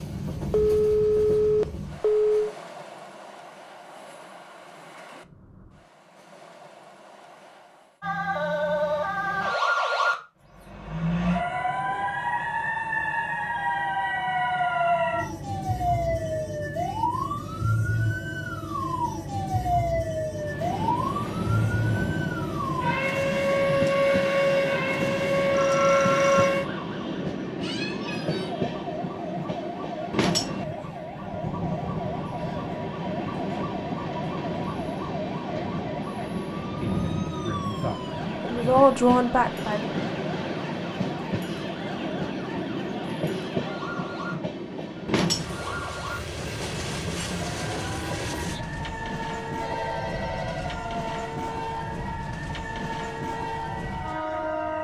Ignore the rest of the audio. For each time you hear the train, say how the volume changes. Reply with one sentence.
You can hear the train from 0.0 to 8.0 s, getting quieter; and from 20.3 to 54.7 s, at a steady volume.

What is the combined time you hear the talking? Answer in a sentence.
The talking can be heard for 3 seconds in total.